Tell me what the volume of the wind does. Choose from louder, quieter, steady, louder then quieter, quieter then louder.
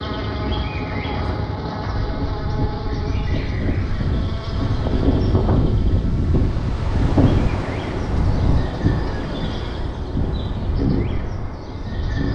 louder then quieter.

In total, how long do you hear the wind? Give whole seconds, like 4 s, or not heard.
12 s.